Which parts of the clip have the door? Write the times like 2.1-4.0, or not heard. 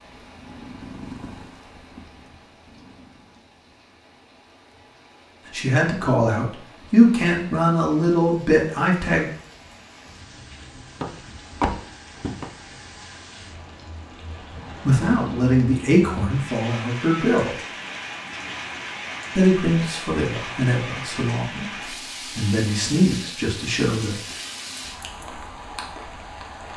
11.0-12.5.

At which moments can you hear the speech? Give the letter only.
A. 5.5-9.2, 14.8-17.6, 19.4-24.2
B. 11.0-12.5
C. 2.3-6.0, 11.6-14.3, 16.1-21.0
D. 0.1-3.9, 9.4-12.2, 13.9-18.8
A.